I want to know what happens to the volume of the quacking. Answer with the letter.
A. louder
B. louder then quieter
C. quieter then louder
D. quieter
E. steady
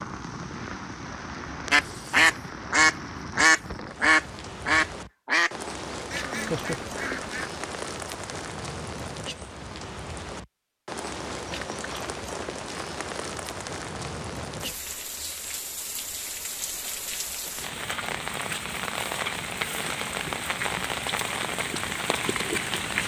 D.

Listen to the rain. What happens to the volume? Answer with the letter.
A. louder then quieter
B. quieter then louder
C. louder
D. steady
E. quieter
C.